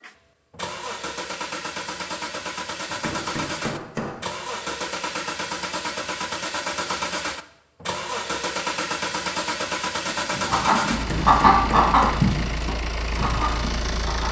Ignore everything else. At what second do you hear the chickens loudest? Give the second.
11 s.